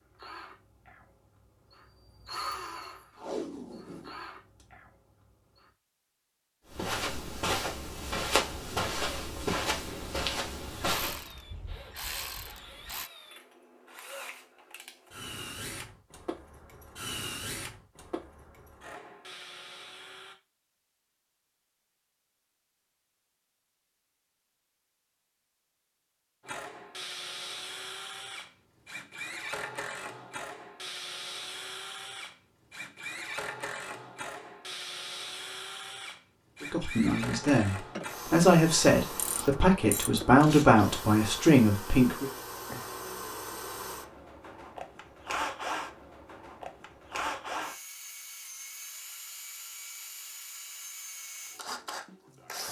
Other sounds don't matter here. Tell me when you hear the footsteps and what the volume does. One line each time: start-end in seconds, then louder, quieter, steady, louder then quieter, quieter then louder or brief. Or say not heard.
6.7-11.3 steady.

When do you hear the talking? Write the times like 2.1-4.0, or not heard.
36.6-42.3.